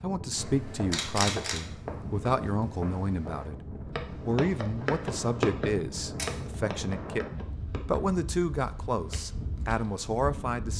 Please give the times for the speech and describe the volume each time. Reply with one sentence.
You can hear the speech from 0.0 to 10.7 s, at a steady volume.